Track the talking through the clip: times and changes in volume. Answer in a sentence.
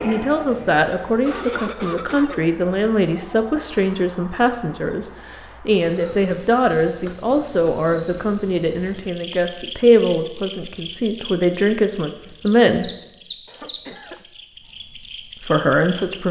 The talking can be heard from 0.0 to 12.9 s, at a steady volume; and briefly from 15.4 to 16.2 s.